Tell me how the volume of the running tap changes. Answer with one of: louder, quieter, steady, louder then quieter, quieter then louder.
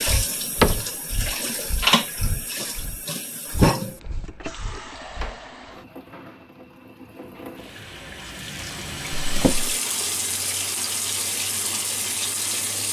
quieter then louder.